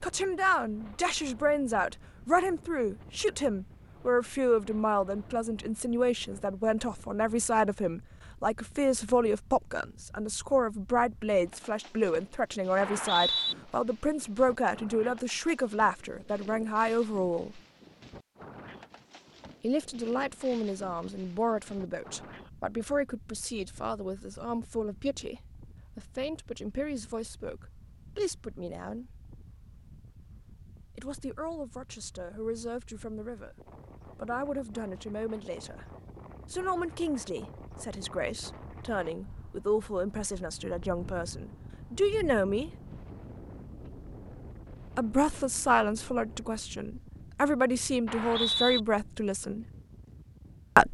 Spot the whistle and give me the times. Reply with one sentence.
The whistle can be heard from 12.8 to 13.6 s and from 48.0 to 48.8 s.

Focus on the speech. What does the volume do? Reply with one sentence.
The volume of the speech goes down, then up.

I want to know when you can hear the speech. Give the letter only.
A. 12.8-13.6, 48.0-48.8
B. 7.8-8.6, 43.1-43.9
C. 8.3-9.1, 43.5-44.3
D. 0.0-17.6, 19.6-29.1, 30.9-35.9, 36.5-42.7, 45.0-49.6
D.